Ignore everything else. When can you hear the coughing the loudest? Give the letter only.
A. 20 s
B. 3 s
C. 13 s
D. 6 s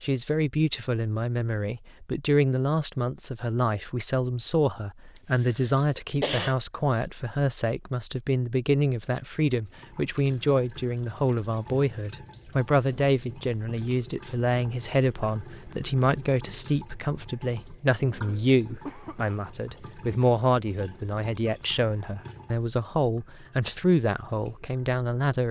D.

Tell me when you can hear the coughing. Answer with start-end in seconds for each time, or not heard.
5.7-6.5, 18.9-19.4.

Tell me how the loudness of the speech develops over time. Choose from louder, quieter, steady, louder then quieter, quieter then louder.
steady.